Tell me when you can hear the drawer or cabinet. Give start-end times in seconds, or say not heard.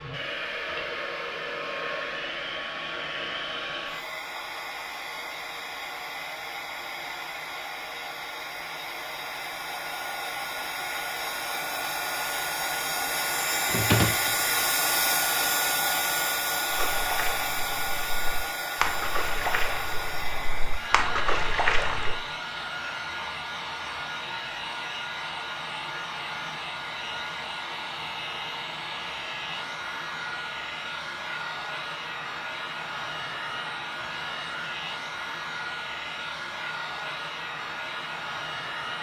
13.7-14.3.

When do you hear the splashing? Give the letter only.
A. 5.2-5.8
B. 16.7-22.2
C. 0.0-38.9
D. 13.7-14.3
B.